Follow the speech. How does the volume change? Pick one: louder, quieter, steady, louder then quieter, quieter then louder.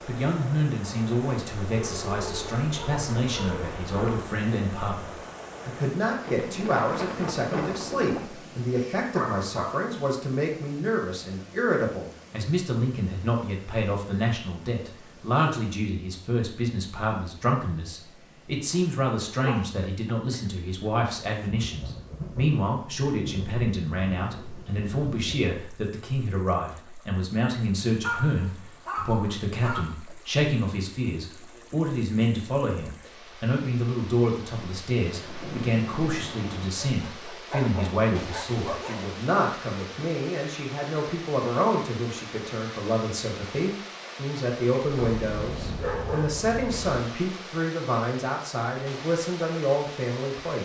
steady.